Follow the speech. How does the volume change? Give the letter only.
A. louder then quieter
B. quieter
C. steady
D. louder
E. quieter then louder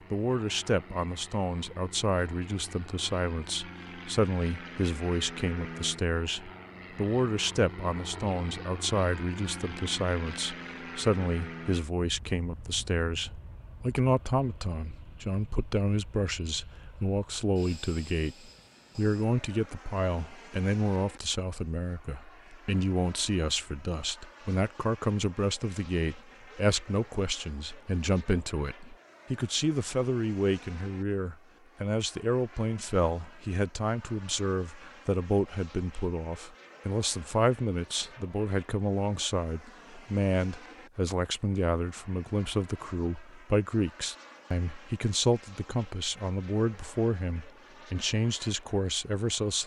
C.